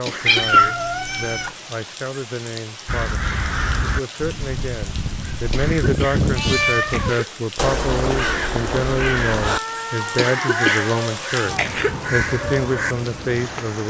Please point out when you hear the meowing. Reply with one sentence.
The meowing can be heard from 0.2 to 1.5 s, from 6.3 to 7.2 s and from 9.4 to 11.6 s.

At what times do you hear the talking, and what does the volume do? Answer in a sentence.
The talking can be heard from 0.0 to 13.8 s, getting louder.